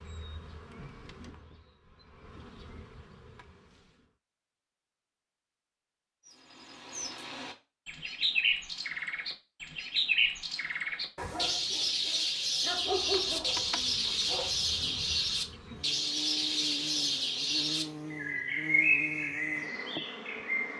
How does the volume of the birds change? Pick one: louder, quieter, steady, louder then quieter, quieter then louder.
steady.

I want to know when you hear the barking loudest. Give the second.
13 s.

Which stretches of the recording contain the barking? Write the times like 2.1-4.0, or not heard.
11.2-14.5.